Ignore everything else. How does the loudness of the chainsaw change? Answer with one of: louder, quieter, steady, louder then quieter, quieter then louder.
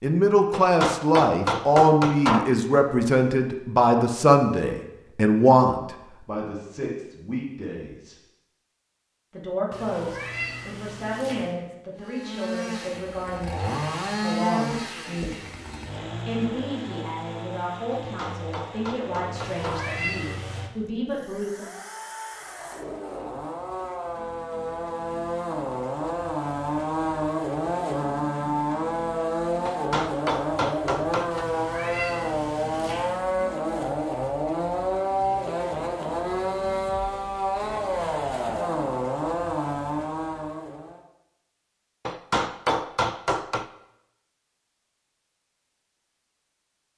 quieter then louder.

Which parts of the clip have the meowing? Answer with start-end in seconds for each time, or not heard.
9.7-11.6, 19.4-20.7, 31.3-33.2.